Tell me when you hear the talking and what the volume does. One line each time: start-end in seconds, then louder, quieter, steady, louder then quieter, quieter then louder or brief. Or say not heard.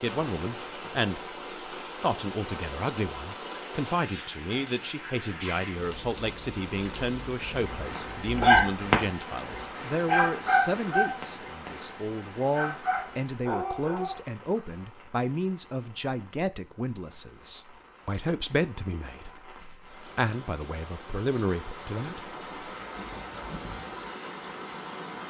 0.0-1.2 brief
2.0-22.3 steady.